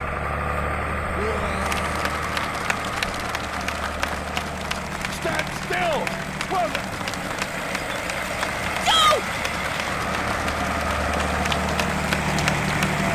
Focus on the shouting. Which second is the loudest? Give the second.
9 s.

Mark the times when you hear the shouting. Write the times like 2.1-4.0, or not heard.
1.1-1.9, 5.1-6.8, 8.8-9.2.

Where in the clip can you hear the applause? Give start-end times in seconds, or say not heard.
1.6-13.1.